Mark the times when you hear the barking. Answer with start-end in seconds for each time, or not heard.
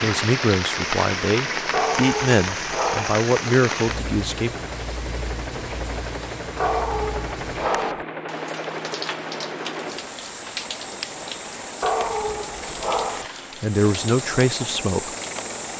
1.7-3.2, 6.5-8.1, 11.8-13.2.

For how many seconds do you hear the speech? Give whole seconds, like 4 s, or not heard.
6 s.